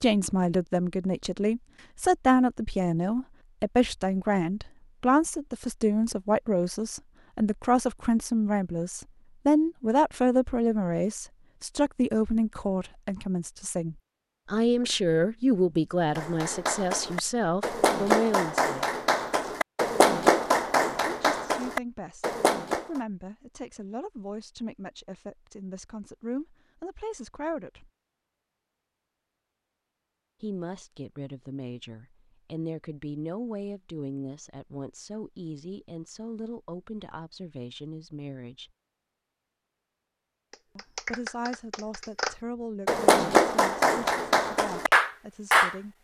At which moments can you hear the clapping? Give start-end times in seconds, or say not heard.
16.1-23.0, 40.5-45.8.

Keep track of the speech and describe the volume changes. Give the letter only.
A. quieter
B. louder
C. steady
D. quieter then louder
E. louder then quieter
A.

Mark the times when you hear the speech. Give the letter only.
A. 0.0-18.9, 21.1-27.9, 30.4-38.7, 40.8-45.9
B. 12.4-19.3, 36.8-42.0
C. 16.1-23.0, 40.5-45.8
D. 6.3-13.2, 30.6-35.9
A.